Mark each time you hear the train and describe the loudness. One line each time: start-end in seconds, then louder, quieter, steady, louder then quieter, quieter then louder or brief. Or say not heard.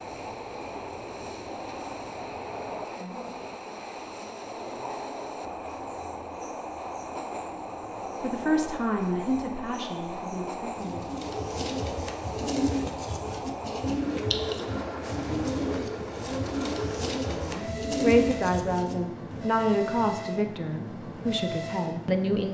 0.0-22.5 steady.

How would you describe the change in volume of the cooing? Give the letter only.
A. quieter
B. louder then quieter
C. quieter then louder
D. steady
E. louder
D.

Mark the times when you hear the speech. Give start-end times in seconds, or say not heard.
8.2-11.3, 17.3-22.5.